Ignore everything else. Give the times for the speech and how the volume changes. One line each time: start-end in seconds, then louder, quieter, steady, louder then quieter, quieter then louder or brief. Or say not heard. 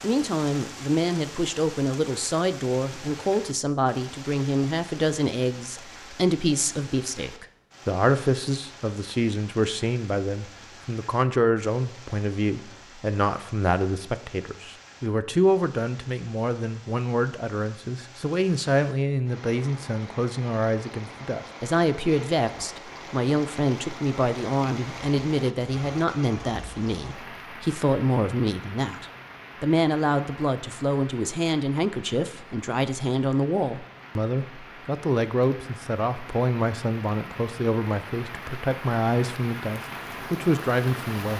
0.0-41.3 steady.